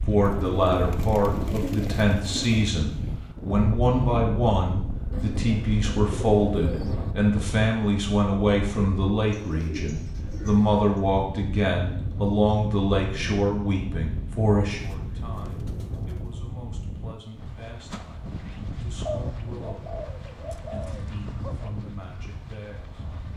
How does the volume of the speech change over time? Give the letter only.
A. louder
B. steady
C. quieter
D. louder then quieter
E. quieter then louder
C.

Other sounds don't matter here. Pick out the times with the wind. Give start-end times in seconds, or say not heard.
0.0-23.3.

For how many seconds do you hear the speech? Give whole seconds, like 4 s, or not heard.
23 s.